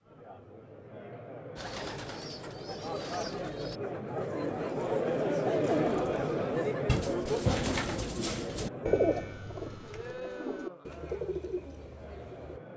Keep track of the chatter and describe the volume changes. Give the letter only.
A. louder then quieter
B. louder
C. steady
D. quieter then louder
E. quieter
A.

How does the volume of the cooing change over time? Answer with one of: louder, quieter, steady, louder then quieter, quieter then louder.
louder then quieter.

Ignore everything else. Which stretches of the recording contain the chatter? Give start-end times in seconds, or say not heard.
0.0-12.7.